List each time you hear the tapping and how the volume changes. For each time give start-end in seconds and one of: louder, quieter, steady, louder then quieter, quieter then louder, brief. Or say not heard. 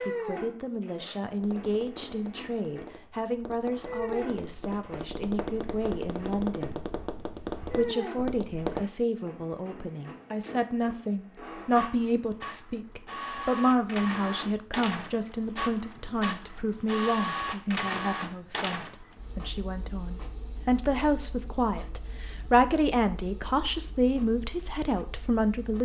1.4-8.8 louder.